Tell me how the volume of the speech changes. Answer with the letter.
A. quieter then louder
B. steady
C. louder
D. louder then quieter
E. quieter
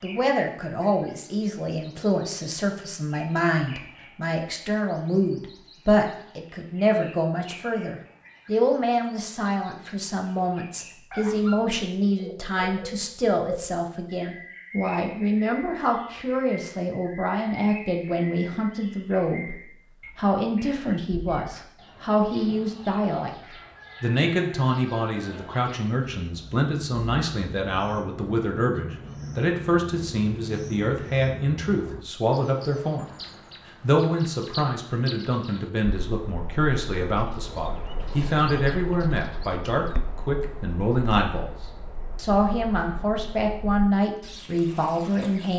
B.